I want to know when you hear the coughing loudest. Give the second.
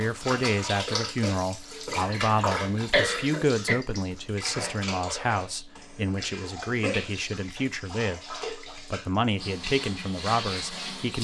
3 s.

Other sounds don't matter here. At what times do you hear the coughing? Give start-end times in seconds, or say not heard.
1.9-3.8, 5.8-7.0.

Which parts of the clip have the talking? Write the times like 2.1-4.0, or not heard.
0.0-11.2.